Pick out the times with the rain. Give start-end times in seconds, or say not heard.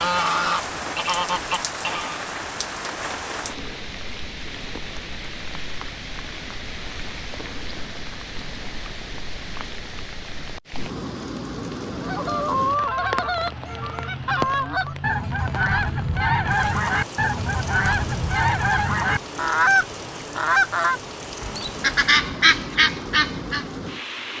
0.0-24.3.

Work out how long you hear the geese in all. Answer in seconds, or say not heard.
14 s.